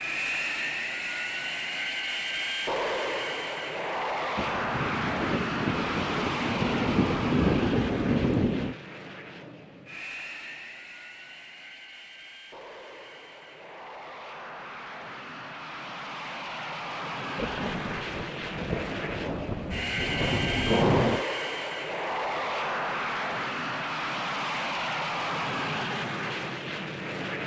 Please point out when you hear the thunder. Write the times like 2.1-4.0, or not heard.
4.3-8.8, 17.4-21.2.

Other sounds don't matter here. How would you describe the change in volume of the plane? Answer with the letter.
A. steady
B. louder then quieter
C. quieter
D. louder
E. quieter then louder
E.